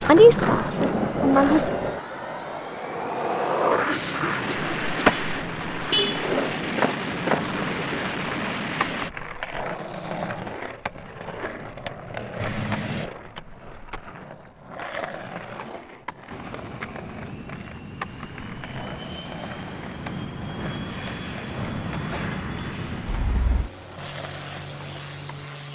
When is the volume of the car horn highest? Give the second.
6 s.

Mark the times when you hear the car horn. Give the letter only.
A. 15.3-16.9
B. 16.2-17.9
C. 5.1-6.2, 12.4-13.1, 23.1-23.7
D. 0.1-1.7
C.